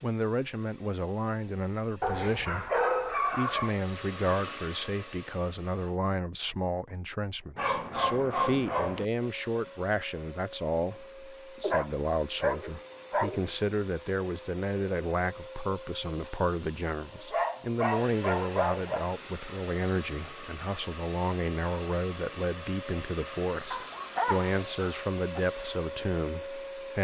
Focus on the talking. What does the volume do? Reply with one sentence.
The volume of the talking stays about the same.